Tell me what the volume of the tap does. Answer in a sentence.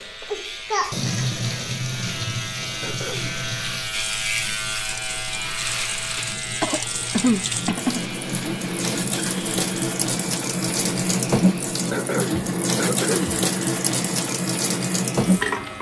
The loudness of the tap goes down, then up.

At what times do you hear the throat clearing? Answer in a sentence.
You can hear the throat clearing from 2.8 to 3.3 s, from 6.2 to 8.0 s and from 11.9 to 13.3 s.